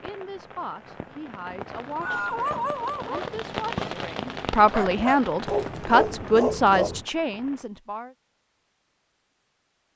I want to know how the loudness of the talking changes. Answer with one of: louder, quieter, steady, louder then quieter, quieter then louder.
louder.